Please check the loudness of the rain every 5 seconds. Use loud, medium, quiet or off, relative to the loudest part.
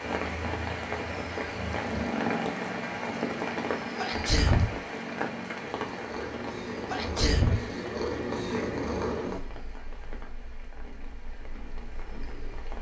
loud, medium, quiet.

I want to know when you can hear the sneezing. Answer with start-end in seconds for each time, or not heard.
4.0-4.8, 6.8-7.7.